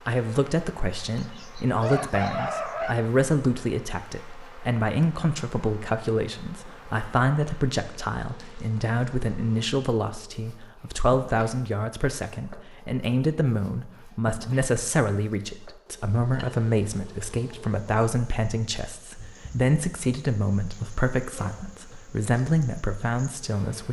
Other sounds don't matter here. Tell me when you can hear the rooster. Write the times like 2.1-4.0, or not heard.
1.1-3.0.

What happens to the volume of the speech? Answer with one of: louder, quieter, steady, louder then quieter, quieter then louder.
steady.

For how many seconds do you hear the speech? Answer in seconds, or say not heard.
24 s.